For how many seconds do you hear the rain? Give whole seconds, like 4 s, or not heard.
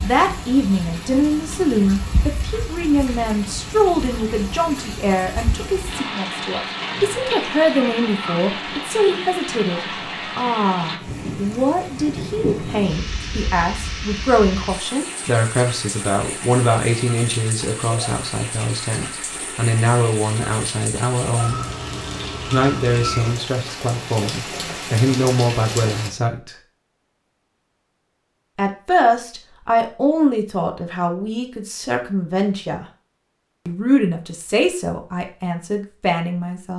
26 s.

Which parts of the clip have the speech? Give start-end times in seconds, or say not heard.
0.0-21.6, 22.5-26.6, 28.6-32.9, 33.6-36.7.